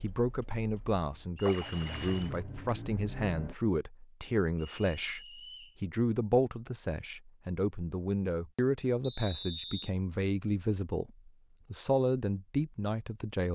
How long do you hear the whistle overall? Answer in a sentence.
You can hear the whistle for 3 seconds altogether.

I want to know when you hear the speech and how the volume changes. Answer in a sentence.
You can hear the speech from 0.0 to 13.5 s, at a steady volume.